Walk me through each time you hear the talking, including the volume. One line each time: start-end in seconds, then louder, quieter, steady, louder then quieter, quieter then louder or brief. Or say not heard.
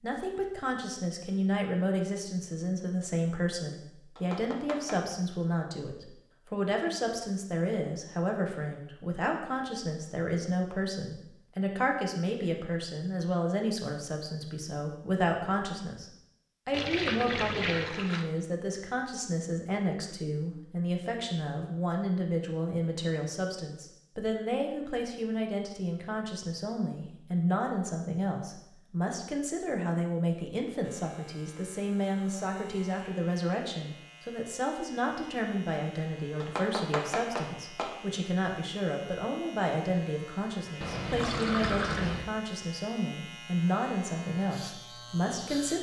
0.0-45.7 steady.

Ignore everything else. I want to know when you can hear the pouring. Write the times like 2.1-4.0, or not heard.
16.7-18.2, 40.8-42.3.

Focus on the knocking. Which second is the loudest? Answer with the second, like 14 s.
37 s.